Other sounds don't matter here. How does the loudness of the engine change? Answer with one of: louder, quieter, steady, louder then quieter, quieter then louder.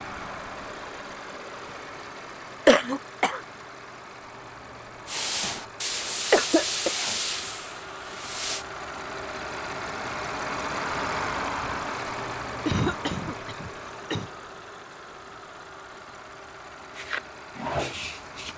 louder then quieter.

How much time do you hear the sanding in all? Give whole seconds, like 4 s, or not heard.
5 s.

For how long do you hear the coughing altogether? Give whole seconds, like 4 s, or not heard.
3 s.